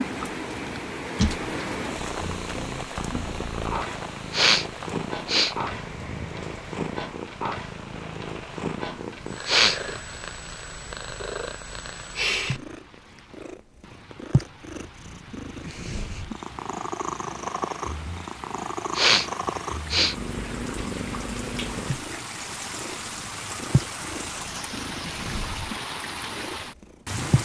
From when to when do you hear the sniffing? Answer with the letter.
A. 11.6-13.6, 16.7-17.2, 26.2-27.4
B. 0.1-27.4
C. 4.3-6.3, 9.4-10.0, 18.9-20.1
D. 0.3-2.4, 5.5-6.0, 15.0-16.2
C.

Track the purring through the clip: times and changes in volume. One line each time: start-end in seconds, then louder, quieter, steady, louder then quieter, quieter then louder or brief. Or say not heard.
0.1-27.4 steady.